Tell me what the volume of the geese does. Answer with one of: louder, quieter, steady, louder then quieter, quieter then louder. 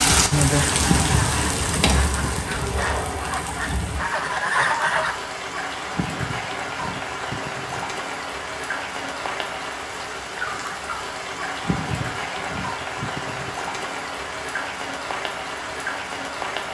louder.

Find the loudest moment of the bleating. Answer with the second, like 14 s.
1 s.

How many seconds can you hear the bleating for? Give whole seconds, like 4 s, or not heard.
6 s.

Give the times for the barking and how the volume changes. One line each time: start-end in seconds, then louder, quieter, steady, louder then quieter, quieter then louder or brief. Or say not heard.
not heard.